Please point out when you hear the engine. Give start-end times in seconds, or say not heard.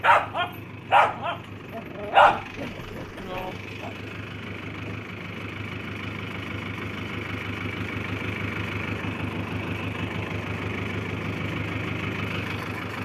0.0-13.0.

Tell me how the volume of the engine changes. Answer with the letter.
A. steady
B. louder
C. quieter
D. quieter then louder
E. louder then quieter
B.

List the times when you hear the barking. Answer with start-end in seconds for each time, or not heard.
0.0-3.9.